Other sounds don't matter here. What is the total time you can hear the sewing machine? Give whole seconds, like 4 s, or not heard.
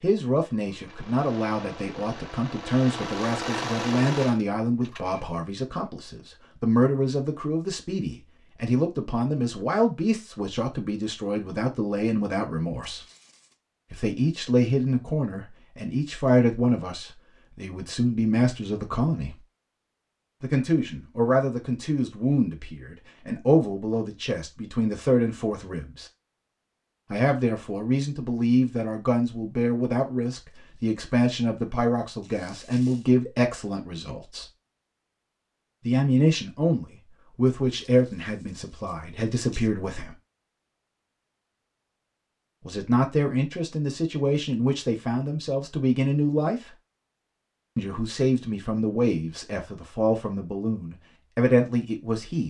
5 s.